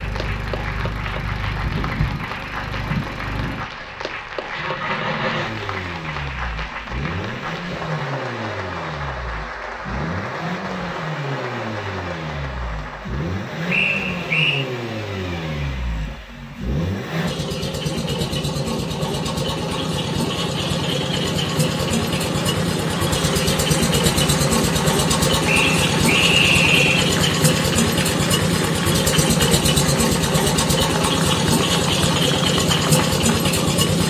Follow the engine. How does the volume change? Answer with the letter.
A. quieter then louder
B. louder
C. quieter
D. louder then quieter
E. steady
B.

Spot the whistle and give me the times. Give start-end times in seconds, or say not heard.
13.7-14.7, 25.4-27.1.